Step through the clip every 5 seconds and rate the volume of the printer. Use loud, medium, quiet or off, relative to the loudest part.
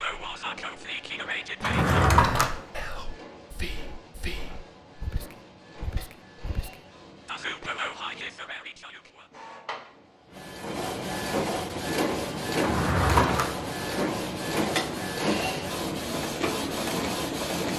quiet, quiet, loud, loud.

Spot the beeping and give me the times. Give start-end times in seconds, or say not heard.
not heard.